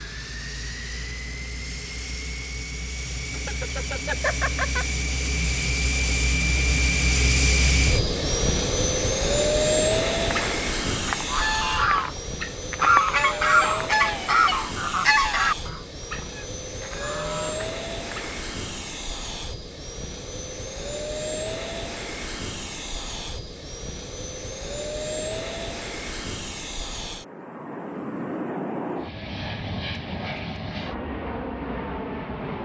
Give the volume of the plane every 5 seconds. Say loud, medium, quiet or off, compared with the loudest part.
medium, loud, medium, medium, medium, medium, medium.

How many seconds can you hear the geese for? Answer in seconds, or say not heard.
8 s.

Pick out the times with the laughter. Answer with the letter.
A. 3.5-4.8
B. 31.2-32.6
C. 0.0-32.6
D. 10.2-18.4
A.